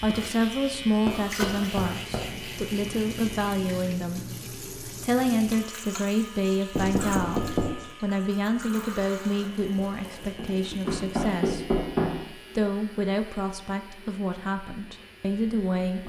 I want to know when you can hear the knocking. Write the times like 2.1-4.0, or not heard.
1.1-2.3, 6.7-7.7, 10.8-12.2.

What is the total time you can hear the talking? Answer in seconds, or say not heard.
16 s.